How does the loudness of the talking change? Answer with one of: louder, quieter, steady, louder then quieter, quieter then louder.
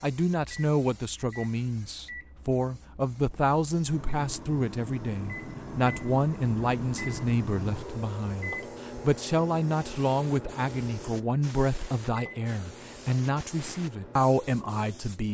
steady.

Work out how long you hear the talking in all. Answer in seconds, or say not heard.
15 s.